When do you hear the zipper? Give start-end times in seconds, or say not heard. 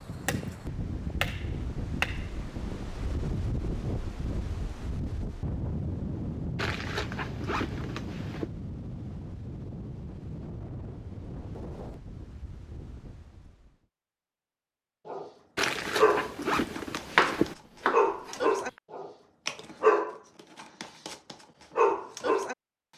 6.5-8.5, 15.6-17.6.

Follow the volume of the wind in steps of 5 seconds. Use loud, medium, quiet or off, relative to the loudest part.
loud, loud, medium, off, off.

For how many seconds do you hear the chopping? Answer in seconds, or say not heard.
4 s.